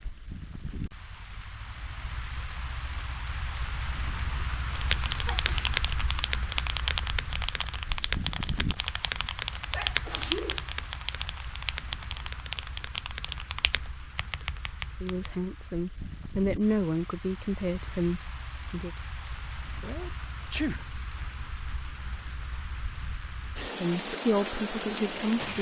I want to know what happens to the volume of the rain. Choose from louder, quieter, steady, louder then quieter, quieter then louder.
quieter then louder.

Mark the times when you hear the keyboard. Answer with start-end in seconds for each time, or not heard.
4.8-15.3.